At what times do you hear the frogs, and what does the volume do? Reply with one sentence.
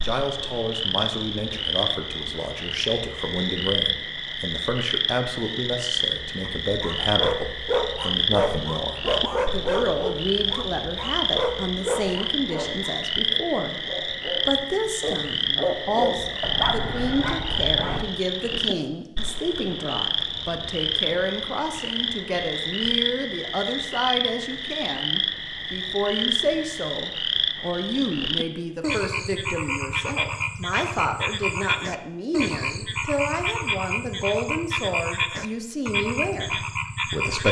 The frogs can be heard from 0.0 to 37.4 s, at a steady volume.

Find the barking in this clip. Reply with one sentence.
You can hear the barking from 6.7 to 18.1 s.